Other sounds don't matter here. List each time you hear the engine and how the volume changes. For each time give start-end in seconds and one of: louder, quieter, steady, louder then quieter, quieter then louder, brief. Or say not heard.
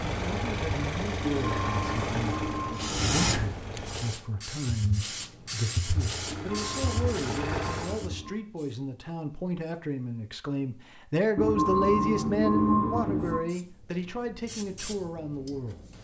0.0-4.2 quieter
5.8-8.1 brief.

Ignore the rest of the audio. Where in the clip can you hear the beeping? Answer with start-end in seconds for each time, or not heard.
1.4-3.2, 6.3-8.3, 11.3-13.4.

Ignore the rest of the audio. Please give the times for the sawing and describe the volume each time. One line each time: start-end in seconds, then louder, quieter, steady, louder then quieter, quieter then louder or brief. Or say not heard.
not heard.